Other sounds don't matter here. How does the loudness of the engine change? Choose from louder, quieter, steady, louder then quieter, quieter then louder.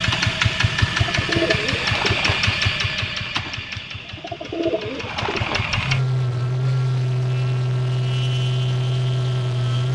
quieter then louder.